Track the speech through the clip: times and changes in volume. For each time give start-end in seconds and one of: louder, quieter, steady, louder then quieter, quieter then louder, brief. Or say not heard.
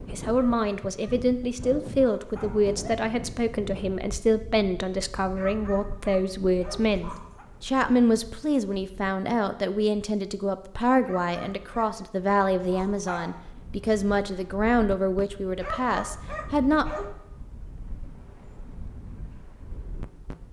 0.1-16.9 steady.